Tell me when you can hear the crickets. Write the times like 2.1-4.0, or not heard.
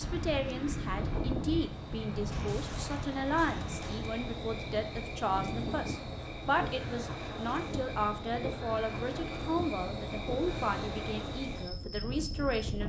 0.0-12.7.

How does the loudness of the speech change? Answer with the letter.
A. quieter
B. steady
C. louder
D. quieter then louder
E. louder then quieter
B.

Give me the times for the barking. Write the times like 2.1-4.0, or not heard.
not heard.